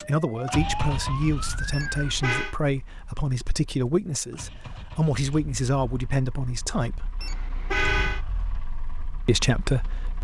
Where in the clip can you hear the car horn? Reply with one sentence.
You can hear the car horn from 1.7 to 2.5 s and from 7.2 to 8.2 s.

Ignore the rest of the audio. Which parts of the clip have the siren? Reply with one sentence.
The siren can be heard from 0.0 to 2.1 s.